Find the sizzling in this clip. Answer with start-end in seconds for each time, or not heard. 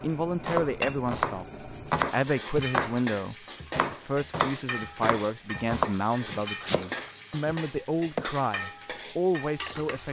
0.0-10.0.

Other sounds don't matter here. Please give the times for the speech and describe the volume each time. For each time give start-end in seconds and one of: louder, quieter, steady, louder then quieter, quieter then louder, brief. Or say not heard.
0.0-10.0 steady.